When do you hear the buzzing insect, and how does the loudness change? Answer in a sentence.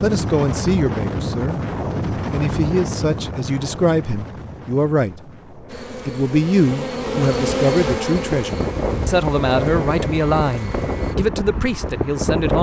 The buzzing insect can be heard from 5.7 to 11.2 s, getting louder then quieter.